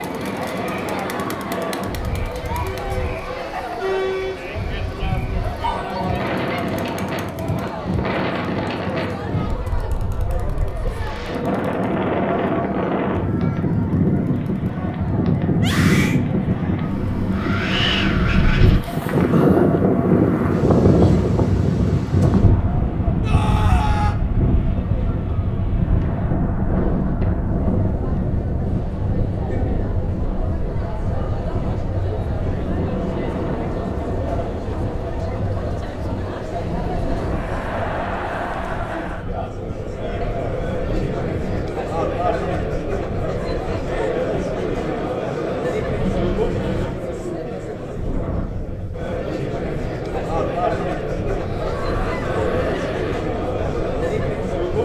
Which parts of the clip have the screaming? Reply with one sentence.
You can hear the screaming from 15.6 to 16.2 s, from 23.2 to 24.1 s and from 51.3 to 53.2 s.